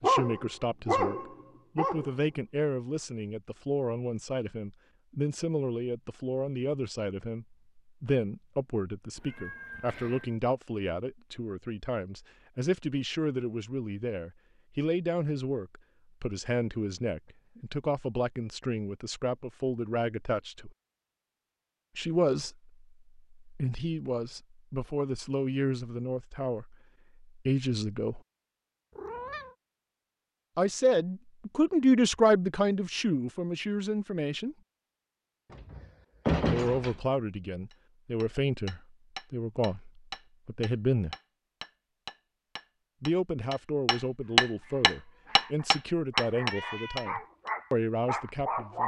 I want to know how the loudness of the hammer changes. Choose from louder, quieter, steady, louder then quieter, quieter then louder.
louder.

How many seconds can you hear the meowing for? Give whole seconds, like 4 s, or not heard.
3 s.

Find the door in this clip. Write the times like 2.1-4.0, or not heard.
35.5-37.0.